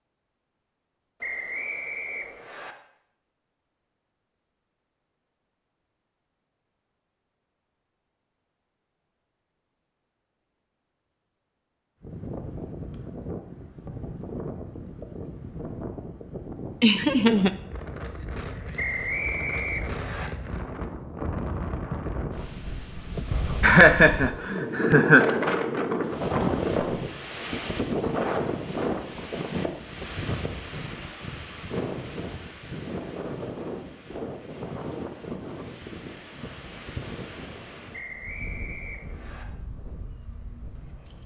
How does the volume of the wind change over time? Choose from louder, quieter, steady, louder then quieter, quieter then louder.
louder then quieter.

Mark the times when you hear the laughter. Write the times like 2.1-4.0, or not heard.
16.8-17.5, 23.1-25.4.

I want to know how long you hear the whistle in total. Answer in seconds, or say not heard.
5 s.